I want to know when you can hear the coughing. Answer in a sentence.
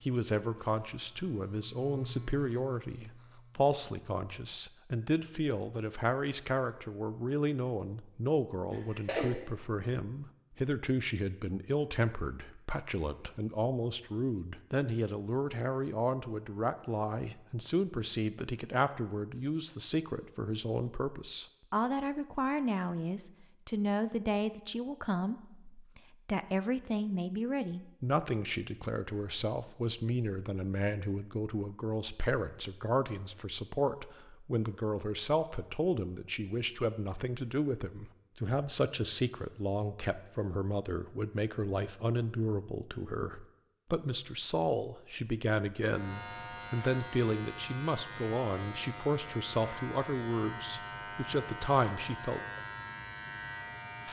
You can hear the coughing from 8.7 to 9.4 s.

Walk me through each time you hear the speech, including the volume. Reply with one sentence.
You can hear the speech from 0.0 to 52.4 s, at a steady volume.